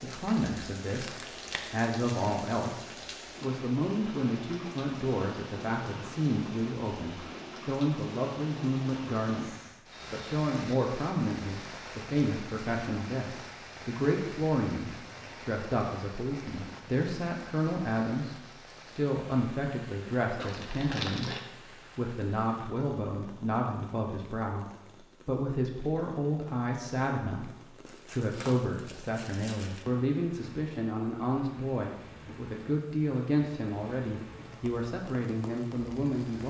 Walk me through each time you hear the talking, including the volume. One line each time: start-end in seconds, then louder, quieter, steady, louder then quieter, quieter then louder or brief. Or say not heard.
0.0-2.8 brief
3.4-9.5 steady
10.1-36.4 steady.